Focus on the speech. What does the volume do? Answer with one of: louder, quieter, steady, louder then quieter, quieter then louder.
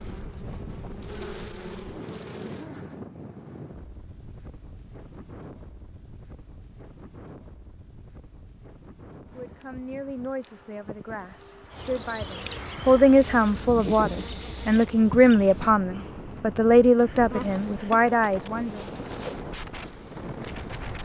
louder.